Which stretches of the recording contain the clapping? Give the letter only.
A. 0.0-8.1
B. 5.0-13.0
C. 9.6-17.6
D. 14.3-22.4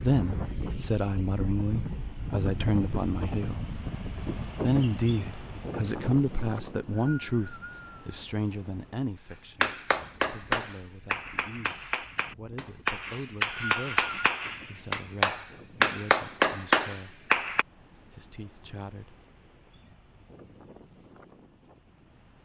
C.